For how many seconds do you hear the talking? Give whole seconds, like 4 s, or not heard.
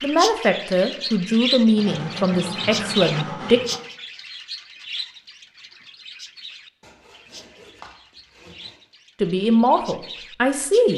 5 s.